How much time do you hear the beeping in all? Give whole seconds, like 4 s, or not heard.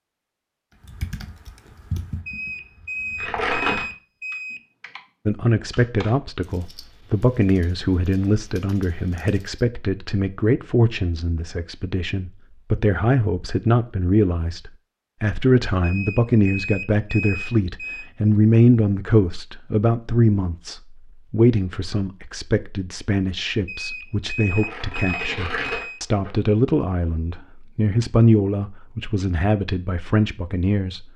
7 s.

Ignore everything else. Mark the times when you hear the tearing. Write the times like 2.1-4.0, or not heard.
3.1-3.9, 24.5-26.3.